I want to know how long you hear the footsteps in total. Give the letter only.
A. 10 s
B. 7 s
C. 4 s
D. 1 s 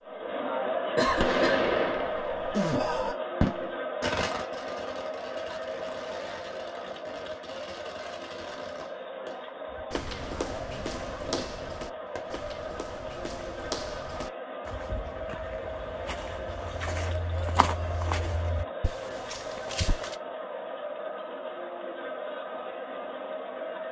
A.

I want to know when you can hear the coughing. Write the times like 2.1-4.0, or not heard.
0.9-1.6.